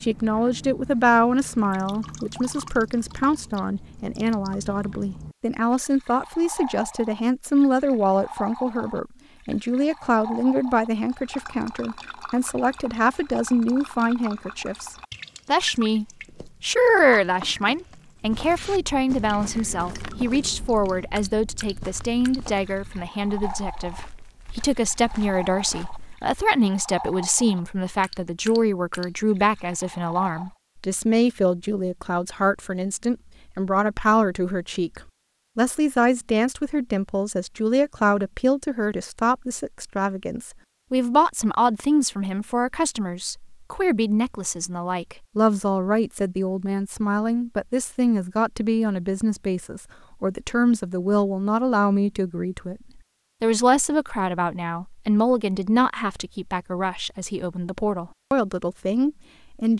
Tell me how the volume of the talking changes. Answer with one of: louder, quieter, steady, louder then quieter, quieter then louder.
steady.